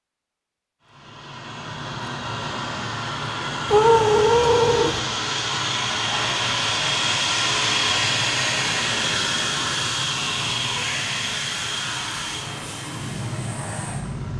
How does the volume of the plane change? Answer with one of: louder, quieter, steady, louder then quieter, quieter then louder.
louder then quieter.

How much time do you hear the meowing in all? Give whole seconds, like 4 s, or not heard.
2 s.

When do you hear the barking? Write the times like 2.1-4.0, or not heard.
not heard.